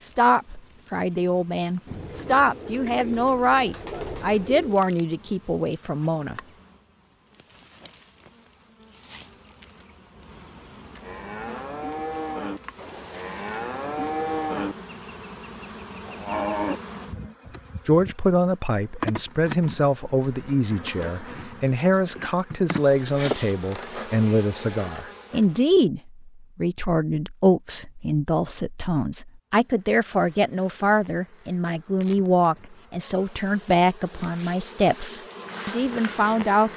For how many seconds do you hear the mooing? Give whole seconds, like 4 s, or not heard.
6 s.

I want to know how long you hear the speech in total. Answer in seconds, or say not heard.
25 s.